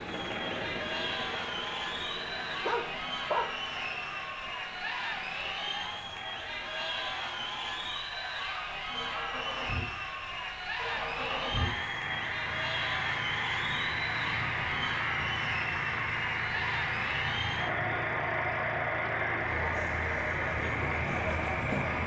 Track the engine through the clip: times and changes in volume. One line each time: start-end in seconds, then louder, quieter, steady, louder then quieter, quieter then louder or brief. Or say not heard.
0.0-22.0 quieter then louder.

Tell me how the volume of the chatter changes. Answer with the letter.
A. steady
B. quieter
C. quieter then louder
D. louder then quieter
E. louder
A.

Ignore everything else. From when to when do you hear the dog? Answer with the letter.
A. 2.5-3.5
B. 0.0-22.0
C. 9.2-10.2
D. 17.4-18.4
A.